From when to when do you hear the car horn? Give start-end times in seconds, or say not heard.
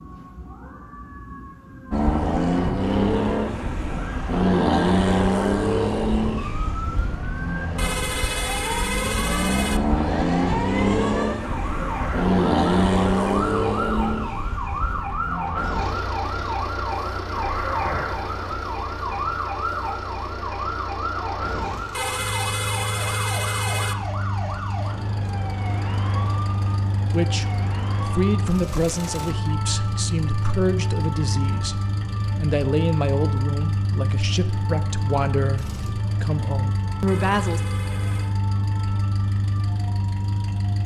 7.8-9.8, 21.9-23.9, 37.0-38.4.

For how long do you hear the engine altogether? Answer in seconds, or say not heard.
39 s.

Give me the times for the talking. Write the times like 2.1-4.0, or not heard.
27.1-37.6.